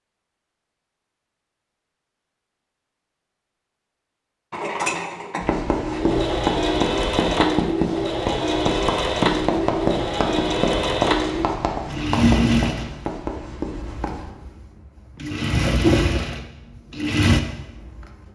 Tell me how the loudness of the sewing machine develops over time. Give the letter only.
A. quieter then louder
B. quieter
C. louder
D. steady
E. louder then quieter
A.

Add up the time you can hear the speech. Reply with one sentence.
The speech can't be heard in this clip.